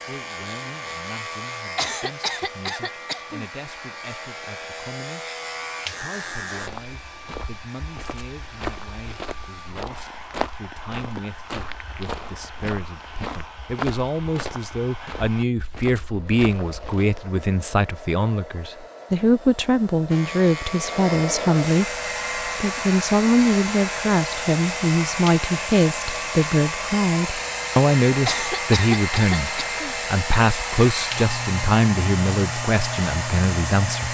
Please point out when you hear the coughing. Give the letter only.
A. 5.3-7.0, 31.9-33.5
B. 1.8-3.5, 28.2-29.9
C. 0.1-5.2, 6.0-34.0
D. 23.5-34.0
B.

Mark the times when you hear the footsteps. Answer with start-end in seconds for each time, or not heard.
6.5-17.1.